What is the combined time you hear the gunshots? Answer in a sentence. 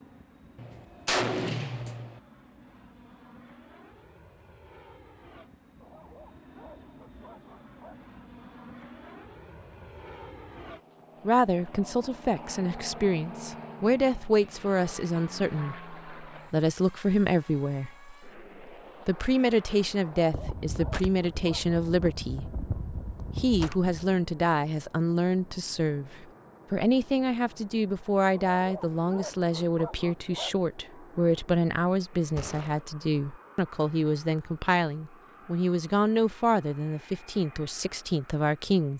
The gunshots can be heard for 6 seconds in total.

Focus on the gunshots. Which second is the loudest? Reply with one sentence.
The volume of the gunshots peaks at 1 second.